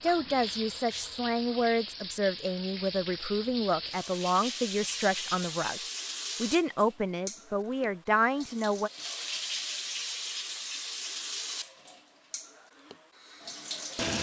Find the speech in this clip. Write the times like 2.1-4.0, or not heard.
0.0-5.8, 6.4-8.9.